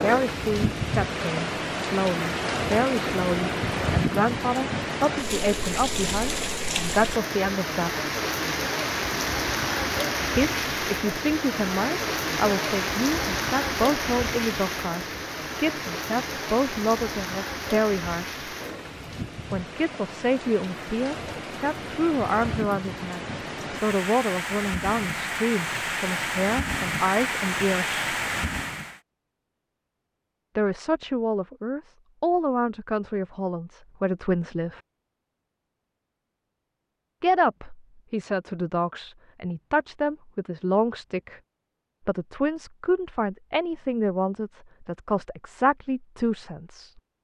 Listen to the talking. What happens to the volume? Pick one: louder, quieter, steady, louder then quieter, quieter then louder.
steady.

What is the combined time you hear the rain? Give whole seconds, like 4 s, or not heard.
29 s.